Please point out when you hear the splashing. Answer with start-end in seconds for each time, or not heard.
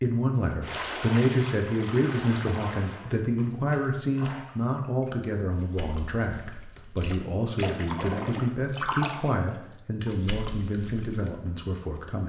0.6-11.4.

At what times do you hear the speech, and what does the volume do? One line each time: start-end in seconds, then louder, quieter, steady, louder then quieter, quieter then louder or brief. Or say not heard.
0.0-12.2 quieter.